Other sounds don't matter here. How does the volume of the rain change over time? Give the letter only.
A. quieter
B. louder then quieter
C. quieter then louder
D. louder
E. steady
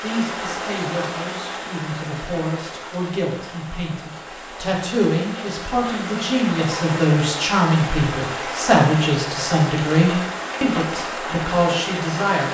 C.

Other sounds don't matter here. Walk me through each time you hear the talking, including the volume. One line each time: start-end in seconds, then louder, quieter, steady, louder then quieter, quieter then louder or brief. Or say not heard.
0.0-12.4 louder.